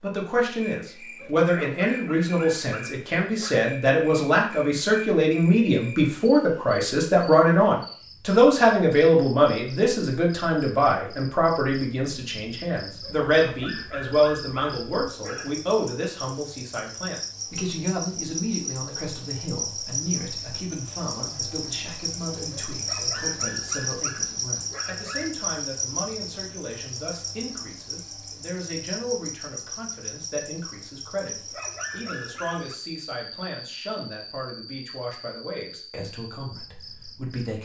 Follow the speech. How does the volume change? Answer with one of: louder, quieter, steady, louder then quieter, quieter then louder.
quieter.